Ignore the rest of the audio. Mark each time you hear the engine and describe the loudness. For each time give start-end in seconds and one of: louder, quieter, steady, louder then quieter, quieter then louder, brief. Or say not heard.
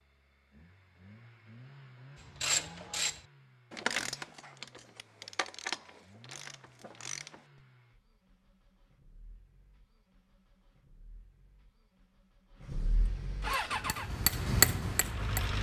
0.0-15.5 quieter then louder.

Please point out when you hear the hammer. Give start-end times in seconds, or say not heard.
13.4-15.5.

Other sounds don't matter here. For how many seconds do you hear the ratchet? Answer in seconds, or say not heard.
5 s.